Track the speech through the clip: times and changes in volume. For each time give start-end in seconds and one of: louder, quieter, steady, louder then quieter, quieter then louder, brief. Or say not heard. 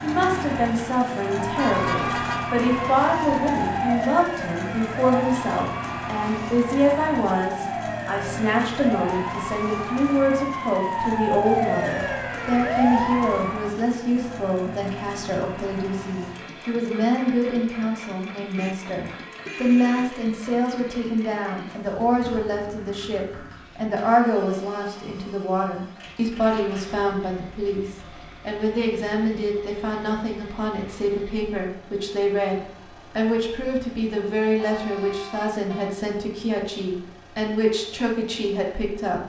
0.0-39.2 steady.